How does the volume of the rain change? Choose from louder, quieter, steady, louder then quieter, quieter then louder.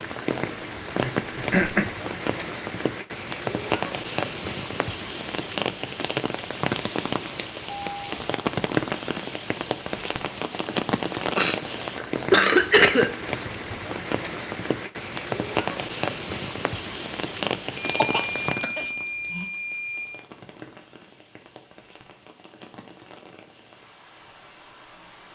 quieter.